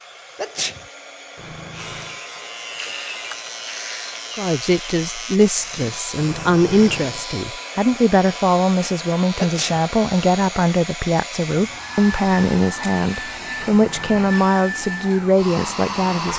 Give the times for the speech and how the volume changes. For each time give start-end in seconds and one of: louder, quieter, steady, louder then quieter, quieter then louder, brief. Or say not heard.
4.3-16.3 steady.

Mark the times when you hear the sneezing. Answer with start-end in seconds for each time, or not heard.
0.3-0.8, 9.3-9.8.